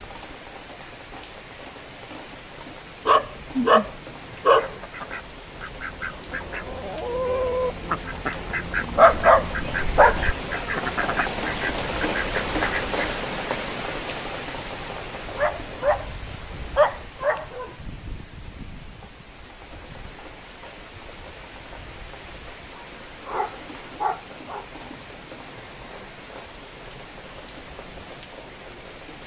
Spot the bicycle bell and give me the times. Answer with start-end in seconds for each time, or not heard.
not heard.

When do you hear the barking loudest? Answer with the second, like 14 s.
9 s.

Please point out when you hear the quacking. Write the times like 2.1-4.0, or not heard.
4.6-13.2.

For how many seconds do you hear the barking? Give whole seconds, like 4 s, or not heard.
8 s.